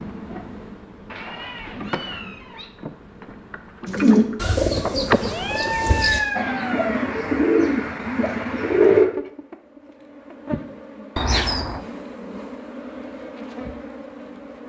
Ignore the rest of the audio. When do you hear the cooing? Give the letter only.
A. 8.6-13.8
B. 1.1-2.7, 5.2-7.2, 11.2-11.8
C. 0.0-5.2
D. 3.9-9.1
D.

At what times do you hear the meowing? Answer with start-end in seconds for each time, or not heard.
1.1-2.7, 5.2-7.2, 11.2-11.8.